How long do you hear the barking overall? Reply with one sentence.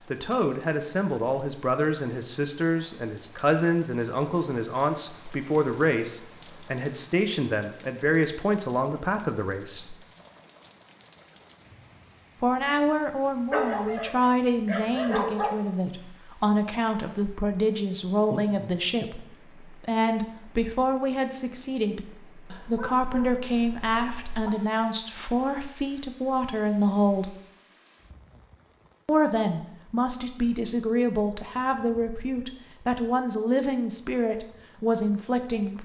The barking can be heard for 4 seconds in total.